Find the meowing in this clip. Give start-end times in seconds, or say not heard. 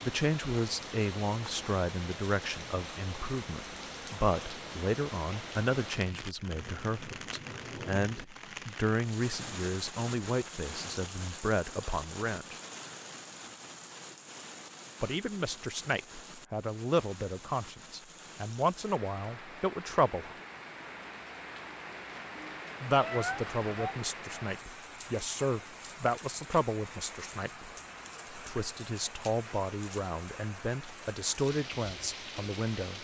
22.9-23.9.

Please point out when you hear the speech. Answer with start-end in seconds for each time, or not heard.
0.0-12.6, 15.0-20.4, 22.8-27.7, 28.4-32.9.